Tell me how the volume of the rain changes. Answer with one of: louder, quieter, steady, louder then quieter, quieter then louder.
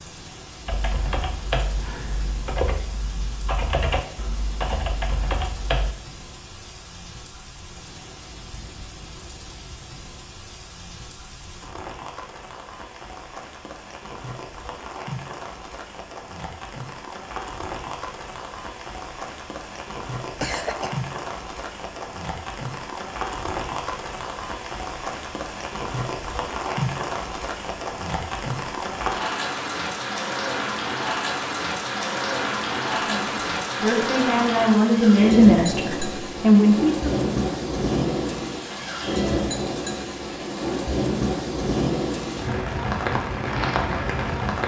louder.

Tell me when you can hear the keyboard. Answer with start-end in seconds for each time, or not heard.
0.7-6.0.